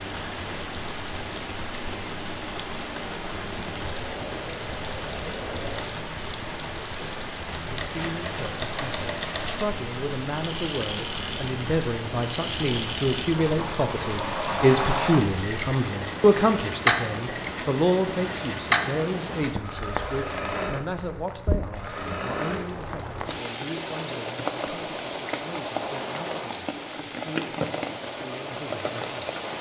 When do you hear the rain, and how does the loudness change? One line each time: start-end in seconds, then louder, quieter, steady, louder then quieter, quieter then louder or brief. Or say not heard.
0.0-29.5 steady.